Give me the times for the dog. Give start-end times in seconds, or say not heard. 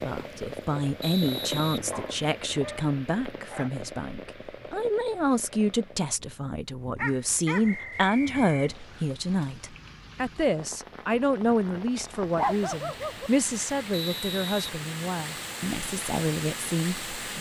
1.9-3.7, 7.0-9.4, 11.9-13.3.